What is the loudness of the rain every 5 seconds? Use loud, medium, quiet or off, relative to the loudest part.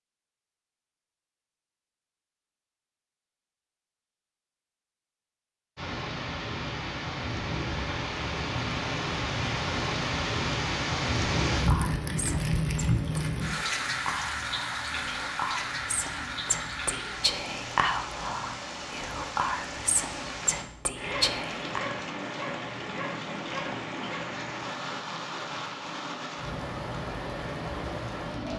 off, loud, loud, medium, medium, medium.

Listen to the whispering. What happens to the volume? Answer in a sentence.
The volume of the whispering goes up.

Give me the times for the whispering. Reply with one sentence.
You can hear the whispering from 11.5 to 21.9 s.